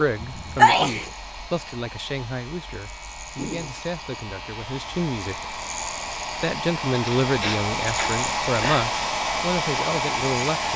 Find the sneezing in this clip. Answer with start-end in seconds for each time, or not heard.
0.2-1.1, 7.0-8.9.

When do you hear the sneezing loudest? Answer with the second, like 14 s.
1 s.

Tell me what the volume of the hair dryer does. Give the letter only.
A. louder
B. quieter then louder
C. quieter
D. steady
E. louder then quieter
A.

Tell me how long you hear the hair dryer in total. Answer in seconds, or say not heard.
11 s.